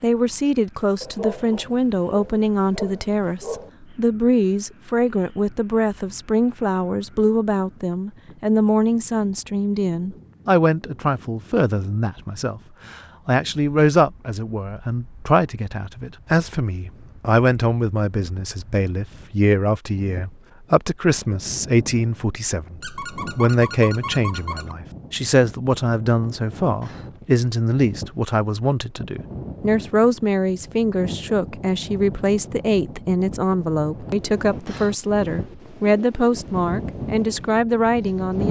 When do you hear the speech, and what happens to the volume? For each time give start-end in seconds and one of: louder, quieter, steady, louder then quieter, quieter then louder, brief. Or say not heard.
0.0-38.4 steady.